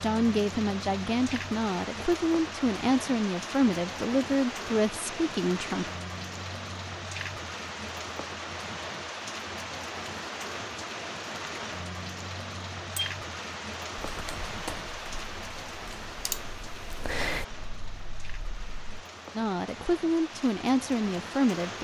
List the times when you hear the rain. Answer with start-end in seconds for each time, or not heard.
0.0-21.7.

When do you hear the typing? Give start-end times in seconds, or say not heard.
13.9-19.1.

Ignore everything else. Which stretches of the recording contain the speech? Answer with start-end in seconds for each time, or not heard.
0.0-5.9, 19.4-21.7.